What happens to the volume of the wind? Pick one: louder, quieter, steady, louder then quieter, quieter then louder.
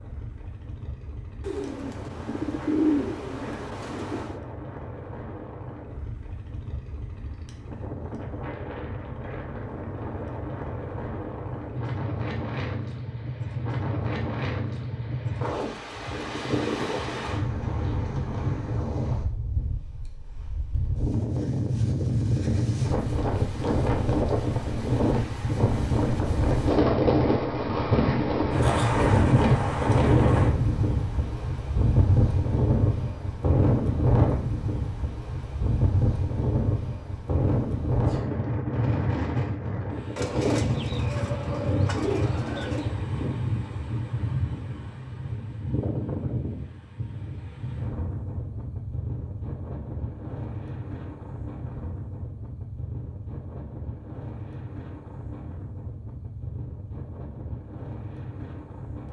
louder then quieter.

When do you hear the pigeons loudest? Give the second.
3 s.